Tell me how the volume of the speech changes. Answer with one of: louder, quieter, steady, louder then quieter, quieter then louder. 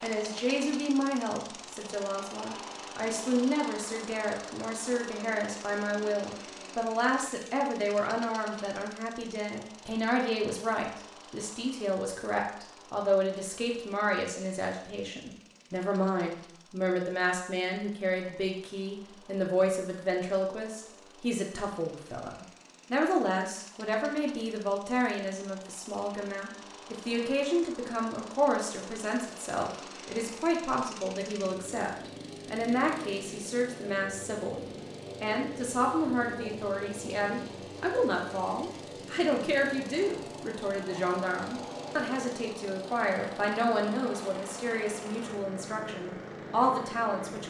steady.